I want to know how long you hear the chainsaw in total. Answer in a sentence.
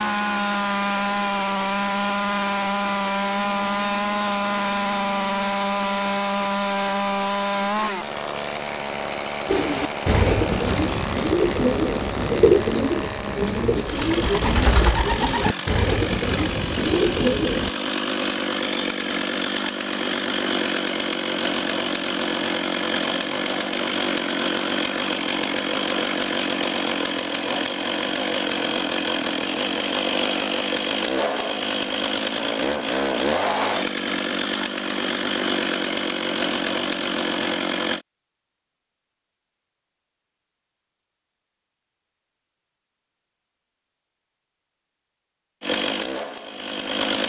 The chainsaw can be heard for 40 seconds in total.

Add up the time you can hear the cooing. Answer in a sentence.
The cooing can be heard for 8 seconds in total.